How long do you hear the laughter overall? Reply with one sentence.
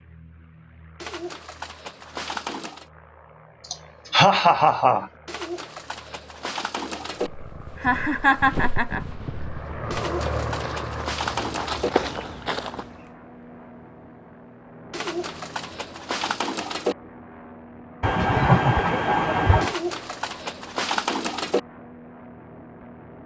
You can hear the laughter for 4 seconds altogether.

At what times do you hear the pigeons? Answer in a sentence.
The pigeons can be heard from 1.0 to 2.9 s, from 5.2 to 7.3 s, from 9.9 to 11.9 s, from 14.9 to 16.9 s and from 19.6 to 21.6 s.